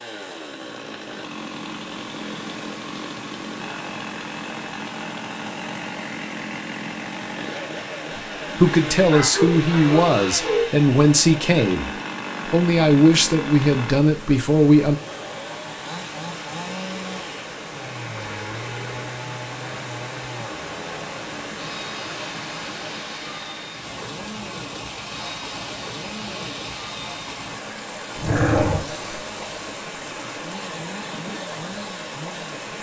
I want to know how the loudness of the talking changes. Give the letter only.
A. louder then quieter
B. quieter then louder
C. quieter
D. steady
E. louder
D.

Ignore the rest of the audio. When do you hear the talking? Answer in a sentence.
You can hear the talking from 8.4 to 15.0 s.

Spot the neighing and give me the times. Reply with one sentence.
You can hear the neighing from 18.2 to 19.1 s.